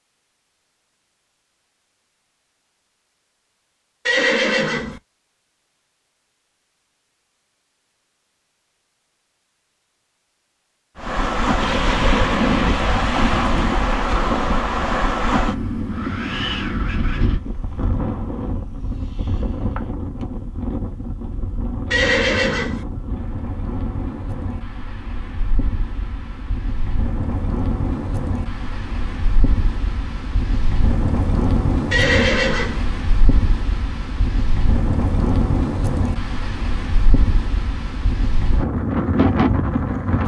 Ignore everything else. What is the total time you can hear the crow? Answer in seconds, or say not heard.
not heard.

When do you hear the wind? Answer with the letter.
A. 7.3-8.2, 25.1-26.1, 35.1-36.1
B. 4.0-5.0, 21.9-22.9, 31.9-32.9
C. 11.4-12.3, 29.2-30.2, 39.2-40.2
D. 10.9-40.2
D.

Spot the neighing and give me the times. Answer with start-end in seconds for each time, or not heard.
4.0-5.0, 21.9-22.9, 31.9-32.9.